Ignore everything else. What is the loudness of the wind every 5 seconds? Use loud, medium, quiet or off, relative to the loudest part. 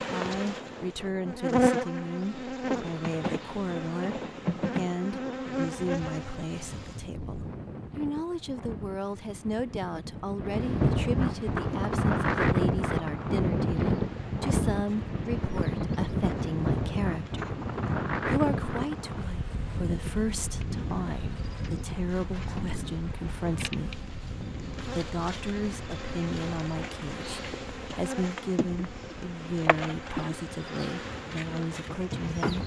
quiet, quiet, loud, loud, medium, quiet, quiet.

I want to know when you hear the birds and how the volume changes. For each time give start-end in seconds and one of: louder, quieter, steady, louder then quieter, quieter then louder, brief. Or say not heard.
not heard.